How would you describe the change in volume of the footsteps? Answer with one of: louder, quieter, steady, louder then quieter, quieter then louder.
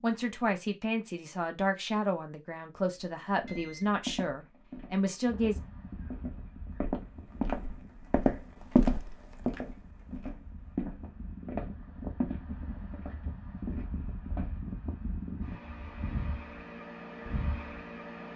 louder then quieter.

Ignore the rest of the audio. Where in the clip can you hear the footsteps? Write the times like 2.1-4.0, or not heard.
3.0-14.6.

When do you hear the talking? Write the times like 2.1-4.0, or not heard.
0.0-5.6.